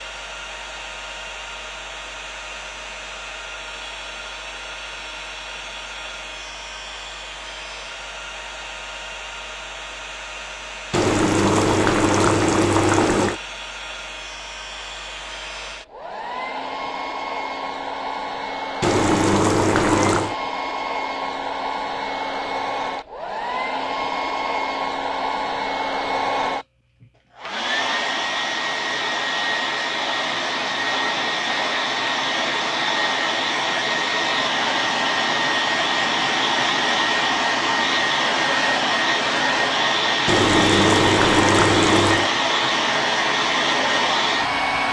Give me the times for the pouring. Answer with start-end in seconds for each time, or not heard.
10.9-13.4, 18.8-20.4, 40.2-42.3.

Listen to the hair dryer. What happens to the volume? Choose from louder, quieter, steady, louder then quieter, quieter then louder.
louder.